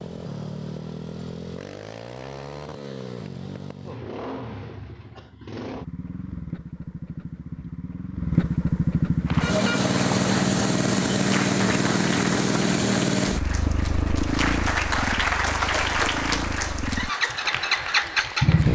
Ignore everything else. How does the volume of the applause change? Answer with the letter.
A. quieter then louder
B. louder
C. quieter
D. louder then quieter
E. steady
D.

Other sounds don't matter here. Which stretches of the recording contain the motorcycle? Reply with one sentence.
You can hear the motorcycle from 0.0 to 18.7 s.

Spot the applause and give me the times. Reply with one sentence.
The applause can be heard from 9.2 to 18.7 s.